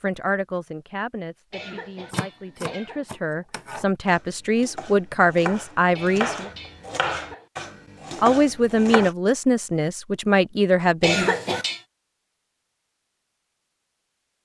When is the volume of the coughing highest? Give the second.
11 s.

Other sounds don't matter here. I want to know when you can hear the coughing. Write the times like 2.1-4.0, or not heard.
1.5-3.0, 5.9-7.5, 11.0-11.8.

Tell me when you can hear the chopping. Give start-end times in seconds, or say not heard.
2.1-9.1.